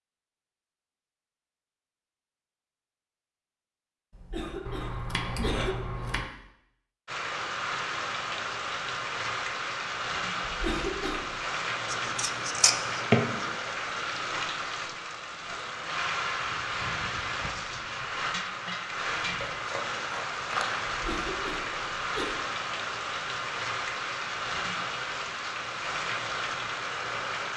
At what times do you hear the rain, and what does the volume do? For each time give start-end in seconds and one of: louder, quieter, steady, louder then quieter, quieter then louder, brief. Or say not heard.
7.0-27.5 steady.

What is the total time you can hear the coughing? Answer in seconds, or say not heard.
4 s.